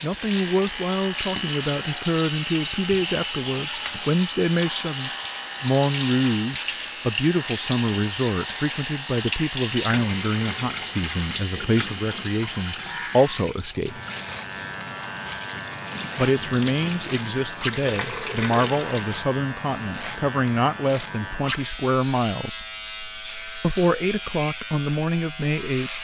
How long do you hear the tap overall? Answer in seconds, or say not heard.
19 s.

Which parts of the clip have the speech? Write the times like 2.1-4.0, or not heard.
0.0-14.0, 16.1-22.6, 23.6-25.9.